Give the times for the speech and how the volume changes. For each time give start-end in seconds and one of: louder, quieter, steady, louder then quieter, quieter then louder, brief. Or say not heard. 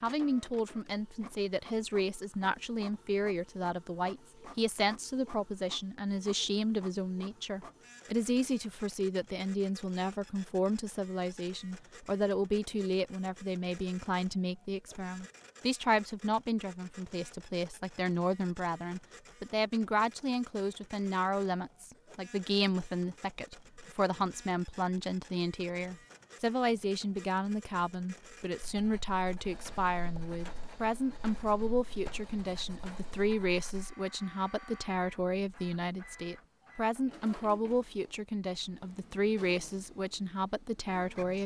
0.0-41.4 steady.